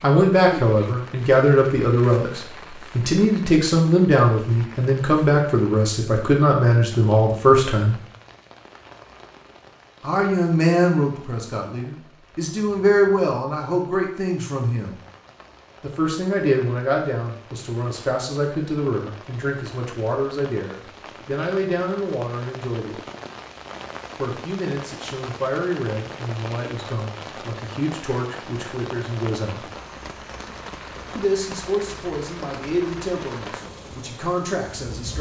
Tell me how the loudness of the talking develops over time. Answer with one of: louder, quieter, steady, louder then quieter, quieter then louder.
quieter.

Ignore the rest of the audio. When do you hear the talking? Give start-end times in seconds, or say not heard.
0.0-8.0, 10.0-14.9, 15.8-22.9, 24.1-29.6, 31.1-35.1.